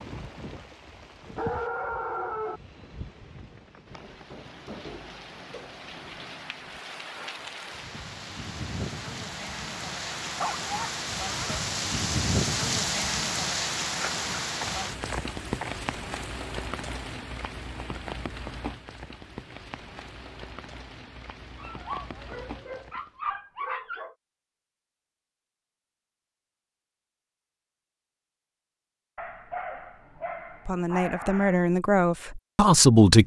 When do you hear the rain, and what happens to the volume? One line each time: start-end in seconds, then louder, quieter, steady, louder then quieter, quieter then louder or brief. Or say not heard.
0.0-23.2 louder then quieter.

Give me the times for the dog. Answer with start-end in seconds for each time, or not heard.
1.2-2.6, 10.3-11.6, 13.9-15.8, 21.6-24.1, 29.1-31.6.